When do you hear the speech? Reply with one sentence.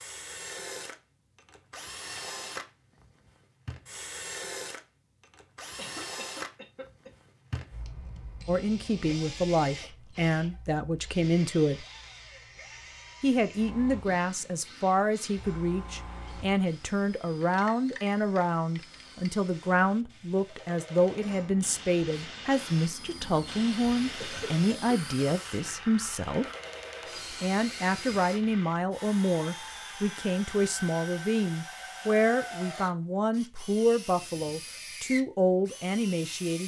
The speech can be heard from 8.4 to 11.8 s, from 13.2 to 26.4 s and from 27.3 to 36.6 s.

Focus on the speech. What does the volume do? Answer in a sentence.
The loudness of the speech stays about the same.